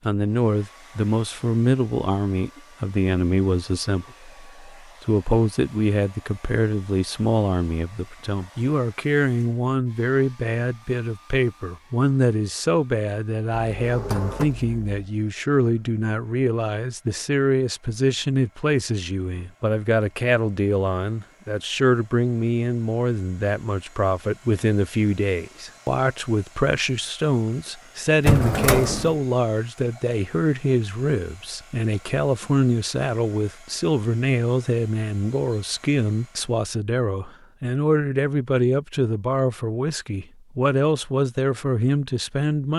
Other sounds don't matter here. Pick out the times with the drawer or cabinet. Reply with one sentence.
The drawer or cabinet can be heard from 13.6 to 15.0 s and from 28.2 to 29.1 s.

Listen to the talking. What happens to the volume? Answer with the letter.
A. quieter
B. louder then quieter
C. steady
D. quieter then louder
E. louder
C.